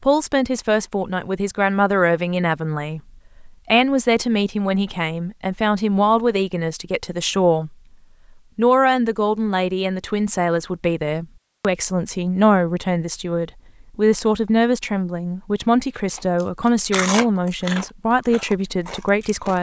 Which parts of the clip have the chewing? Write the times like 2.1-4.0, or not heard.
15.9-19.5.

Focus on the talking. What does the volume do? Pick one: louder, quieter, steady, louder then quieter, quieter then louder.
steady.